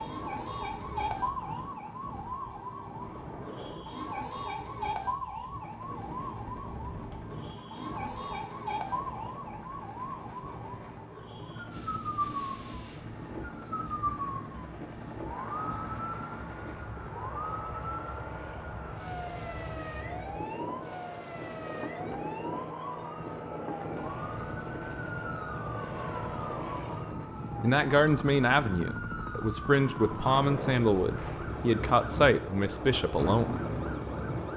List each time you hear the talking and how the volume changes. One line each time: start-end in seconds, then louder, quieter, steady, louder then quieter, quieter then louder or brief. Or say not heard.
27.6-33.5 steady.